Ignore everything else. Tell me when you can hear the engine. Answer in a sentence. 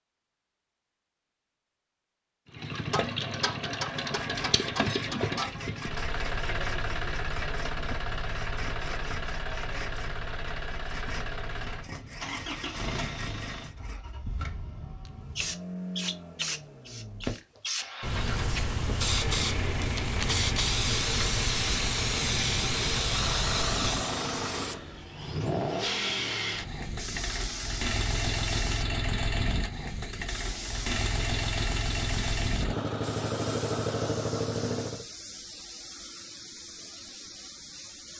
You can hear the engine from 2.5 to 35.0 s.